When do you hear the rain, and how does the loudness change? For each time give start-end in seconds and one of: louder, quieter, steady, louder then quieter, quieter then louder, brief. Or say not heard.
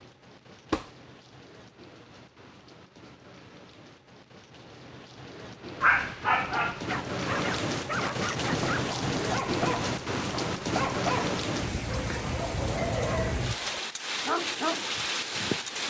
0.0-15.8 louder.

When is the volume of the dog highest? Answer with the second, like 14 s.
6 s.